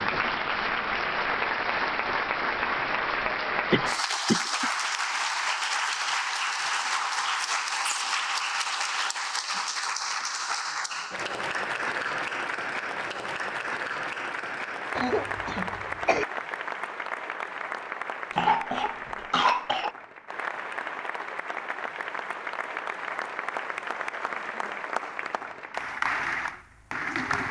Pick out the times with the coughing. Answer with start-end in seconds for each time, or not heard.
3.7-4.7, 14.9-16.2, 18.3-19.9.